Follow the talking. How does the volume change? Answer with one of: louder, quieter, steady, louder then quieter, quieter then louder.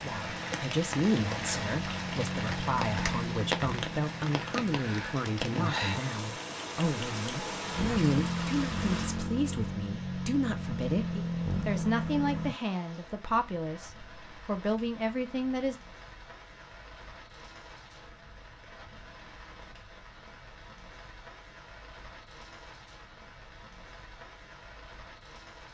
steady.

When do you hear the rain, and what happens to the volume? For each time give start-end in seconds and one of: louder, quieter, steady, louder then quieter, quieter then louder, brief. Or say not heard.
0.0-25.6 quieter.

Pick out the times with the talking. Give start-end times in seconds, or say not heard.
0.0-15.8.